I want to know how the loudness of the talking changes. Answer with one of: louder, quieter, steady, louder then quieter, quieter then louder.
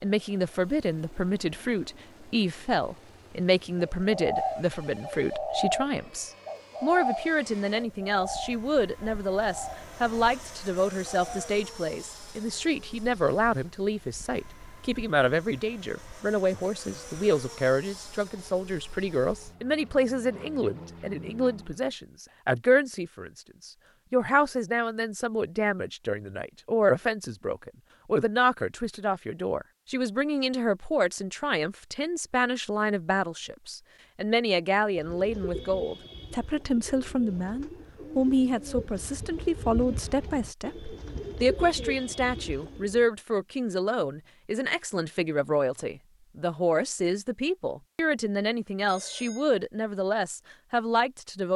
steady.